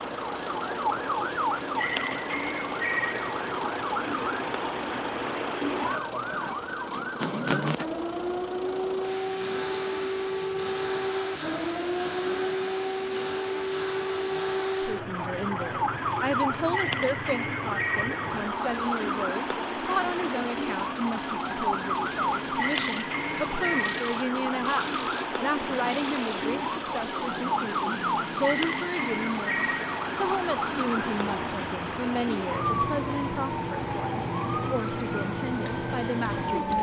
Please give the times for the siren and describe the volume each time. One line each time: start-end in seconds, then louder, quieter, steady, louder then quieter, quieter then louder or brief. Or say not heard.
0.0-36.7 steady.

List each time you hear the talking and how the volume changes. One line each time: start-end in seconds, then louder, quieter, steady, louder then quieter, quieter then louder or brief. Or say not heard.
14.8-36.7 steady.